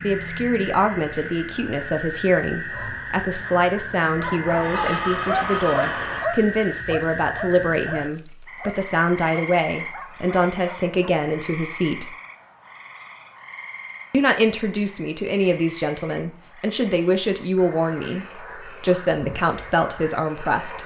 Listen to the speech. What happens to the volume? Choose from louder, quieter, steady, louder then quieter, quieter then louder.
steady.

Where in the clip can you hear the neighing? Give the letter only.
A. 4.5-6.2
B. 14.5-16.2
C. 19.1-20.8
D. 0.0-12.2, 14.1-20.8
A.